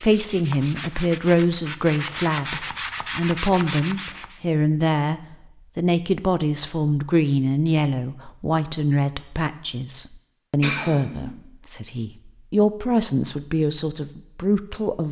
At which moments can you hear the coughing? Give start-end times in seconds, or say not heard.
10.6-11.3.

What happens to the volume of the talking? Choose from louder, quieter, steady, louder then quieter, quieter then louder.
steady.